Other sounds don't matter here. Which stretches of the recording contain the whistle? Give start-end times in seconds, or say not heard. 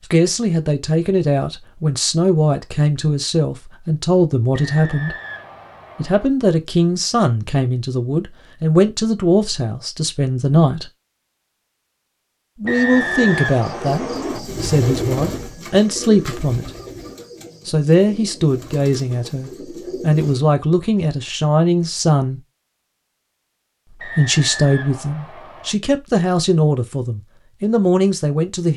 4.5-6.3, 12.7-14.4, 24.0-25.8.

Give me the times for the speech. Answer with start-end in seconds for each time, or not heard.
0.1-5.2, 6.0-10.9, 12.6-16.7, 17.6-22.4, 24.1-28.7.